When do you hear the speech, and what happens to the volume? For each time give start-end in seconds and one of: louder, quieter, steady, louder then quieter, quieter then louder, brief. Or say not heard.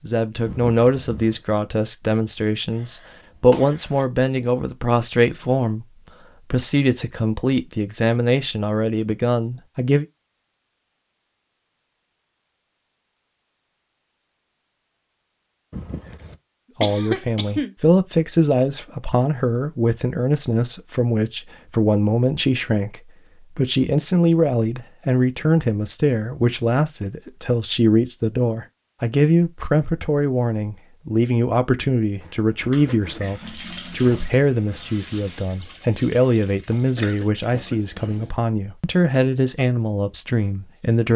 0.0-10.1 steady
16.8-41.1 steady.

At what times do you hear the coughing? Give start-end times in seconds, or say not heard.
2.7-4.0, 16.8-17.8, 36.7-38.2.